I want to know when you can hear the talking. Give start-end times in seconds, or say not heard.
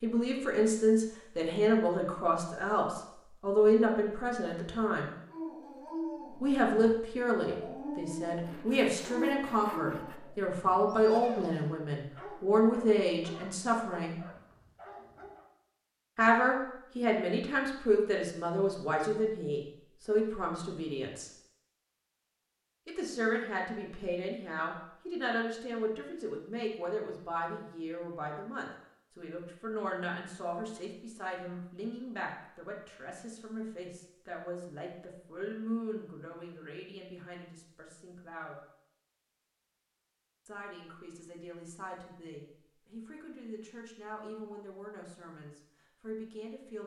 0.0-5.1, 6.4-14.2, 16.1-21.3, 22.9-38.5, 40.5-46.8.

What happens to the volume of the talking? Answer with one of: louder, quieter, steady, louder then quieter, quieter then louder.
quieter.